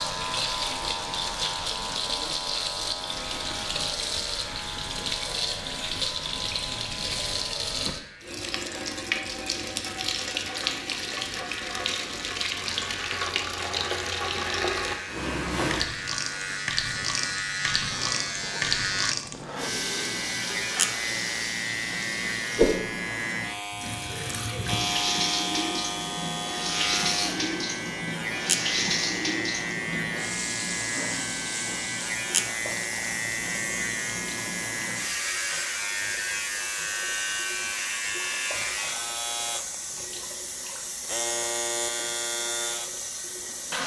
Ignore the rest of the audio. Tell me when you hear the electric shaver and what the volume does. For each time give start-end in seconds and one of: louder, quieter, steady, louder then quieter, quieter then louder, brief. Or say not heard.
0.0-43.8 louder.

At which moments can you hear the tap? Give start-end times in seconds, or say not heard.
0.0-43.8.